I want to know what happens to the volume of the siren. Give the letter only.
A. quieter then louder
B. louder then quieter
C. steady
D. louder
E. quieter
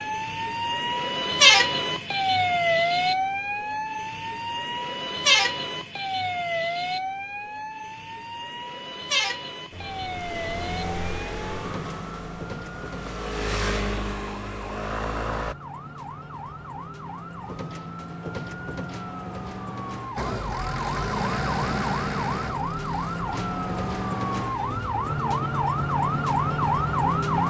A.